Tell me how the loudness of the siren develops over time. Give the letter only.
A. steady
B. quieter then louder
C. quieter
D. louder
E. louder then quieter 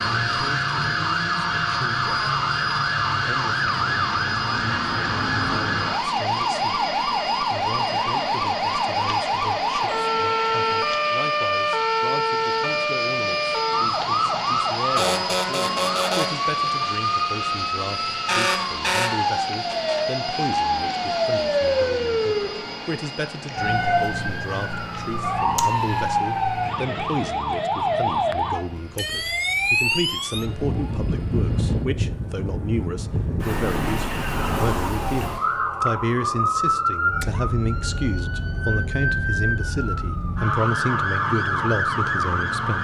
A.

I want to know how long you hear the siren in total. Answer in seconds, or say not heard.
43 s.